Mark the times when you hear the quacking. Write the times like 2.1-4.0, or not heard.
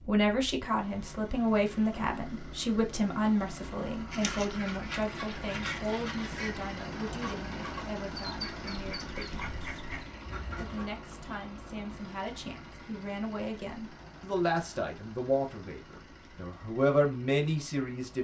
4.1-10.9.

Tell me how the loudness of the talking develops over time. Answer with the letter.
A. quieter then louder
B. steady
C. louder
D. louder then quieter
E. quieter
A.